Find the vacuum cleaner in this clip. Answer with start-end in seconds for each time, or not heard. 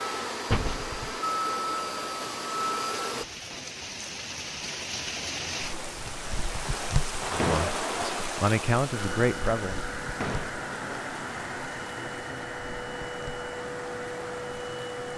0.0-3.2, 8.8-15.1.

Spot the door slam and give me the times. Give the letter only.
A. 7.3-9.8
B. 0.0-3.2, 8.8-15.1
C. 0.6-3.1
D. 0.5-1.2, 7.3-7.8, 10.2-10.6
D.